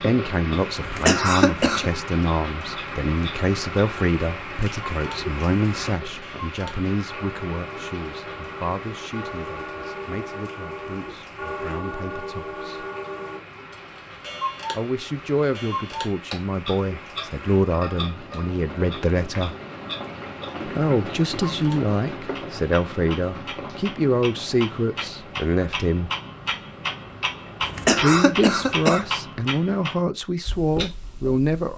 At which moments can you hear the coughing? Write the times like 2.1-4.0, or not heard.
0.8-1.9, 27.6-29.1.